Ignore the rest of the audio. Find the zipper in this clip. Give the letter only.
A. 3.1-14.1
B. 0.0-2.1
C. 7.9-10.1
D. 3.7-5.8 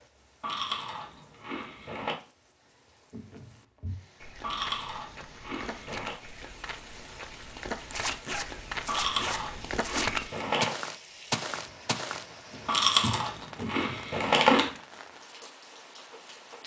C.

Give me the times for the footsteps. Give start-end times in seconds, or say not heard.
3.1-14.1.